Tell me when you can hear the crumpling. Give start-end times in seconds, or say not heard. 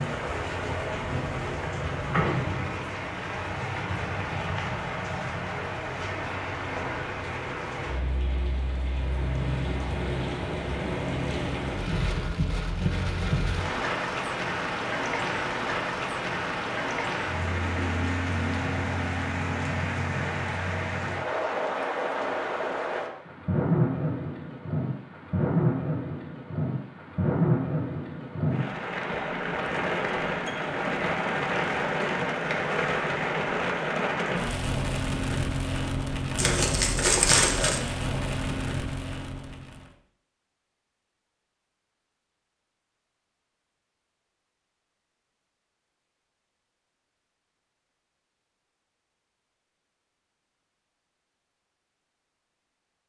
36.4-37.8.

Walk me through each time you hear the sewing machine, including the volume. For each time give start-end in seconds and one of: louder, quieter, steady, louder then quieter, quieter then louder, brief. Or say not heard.
not heard.